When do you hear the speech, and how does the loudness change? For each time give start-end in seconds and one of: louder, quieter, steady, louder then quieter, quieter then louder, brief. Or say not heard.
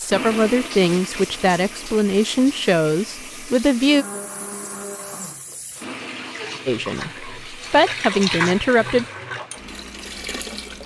0.0-4.0 quieter
6.7-9.1 brief.